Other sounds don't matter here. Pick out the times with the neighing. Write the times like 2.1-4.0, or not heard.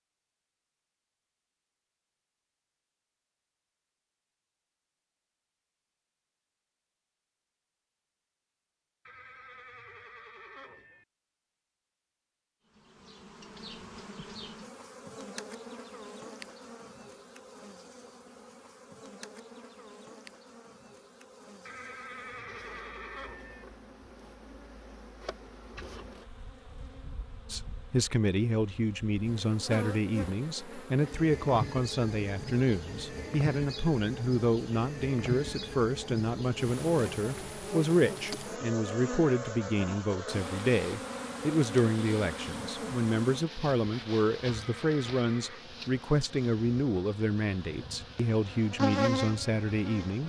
9.1-11.1, 21.6-23.6, 44.5-45.6.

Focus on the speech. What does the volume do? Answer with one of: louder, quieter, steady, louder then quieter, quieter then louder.
steady.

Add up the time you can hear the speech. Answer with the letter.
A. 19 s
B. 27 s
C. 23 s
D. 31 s
C.